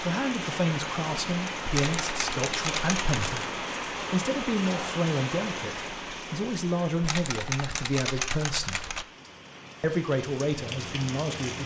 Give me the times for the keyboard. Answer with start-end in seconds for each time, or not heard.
1.7-3.5, 7.0-9.1.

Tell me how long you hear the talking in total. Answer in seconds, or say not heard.
11 s.